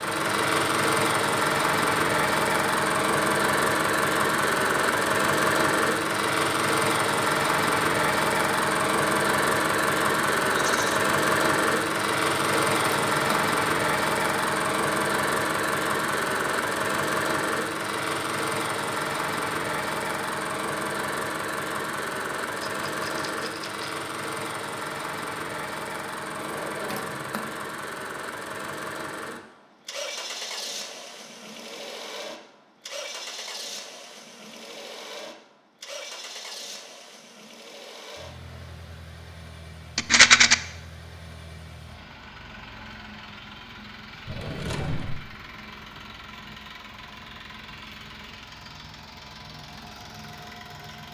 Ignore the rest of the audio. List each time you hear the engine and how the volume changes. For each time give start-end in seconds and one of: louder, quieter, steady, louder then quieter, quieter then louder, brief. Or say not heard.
0.0-51.0 quieter.